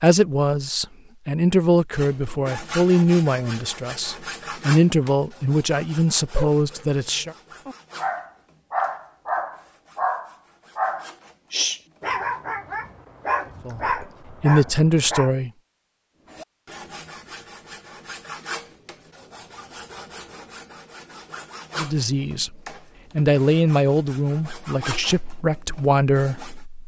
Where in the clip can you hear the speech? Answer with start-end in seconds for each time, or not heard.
0.0-7.3, 13.7-15.5, 21.8-26.6.